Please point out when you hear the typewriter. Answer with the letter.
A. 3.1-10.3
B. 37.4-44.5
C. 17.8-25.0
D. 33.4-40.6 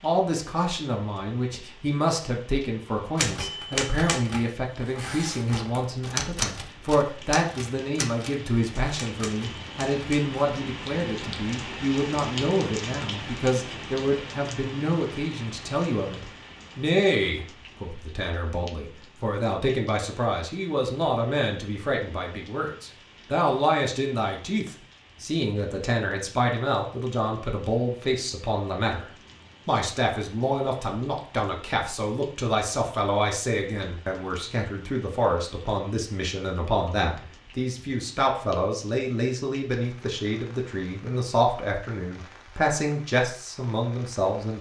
A.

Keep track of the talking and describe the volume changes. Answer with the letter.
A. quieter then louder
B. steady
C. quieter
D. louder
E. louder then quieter
B.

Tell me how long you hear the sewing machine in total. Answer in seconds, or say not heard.
not heard.